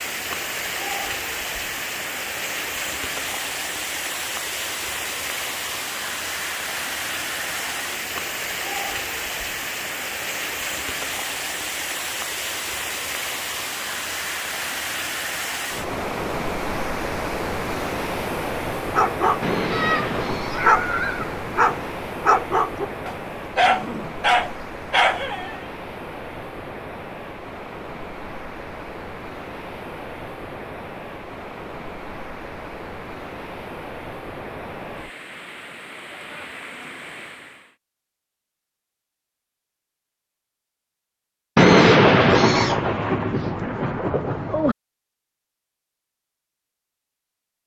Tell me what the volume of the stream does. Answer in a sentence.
The volume of the stream goes down.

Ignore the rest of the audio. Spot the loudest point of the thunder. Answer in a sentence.
The loudest moment of the thunder is at 42 seconds.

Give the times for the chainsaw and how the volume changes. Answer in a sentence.
The chainsaw can't be heard in this clip.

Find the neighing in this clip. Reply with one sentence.
The neighing can't be heard in this clip.